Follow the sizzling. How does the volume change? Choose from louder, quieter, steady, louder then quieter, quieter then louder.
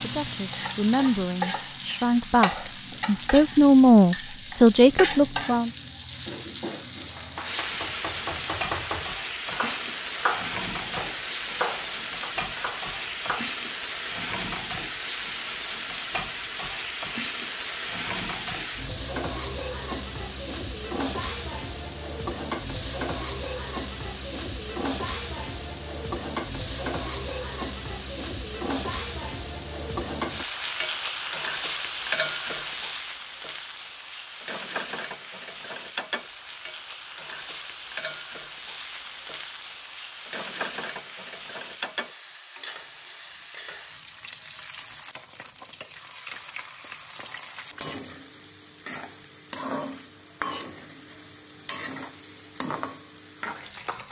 quieter.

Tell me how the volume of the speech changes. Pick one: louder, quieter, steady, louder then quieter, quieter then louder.
louder.